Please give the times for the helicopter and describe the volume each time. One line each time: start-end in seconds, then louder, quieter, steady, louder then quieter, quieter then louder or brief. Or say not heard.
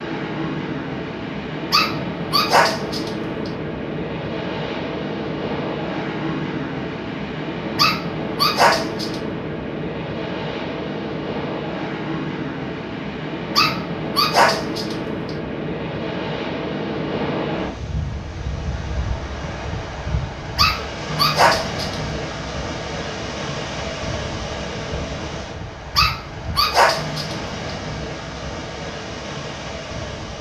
not heard.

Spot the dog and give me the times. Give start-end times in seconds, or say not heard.
1.7-3.5, 7.8-9.2, 13.6-14.9, 20.6-21.9, 25.9-27.4.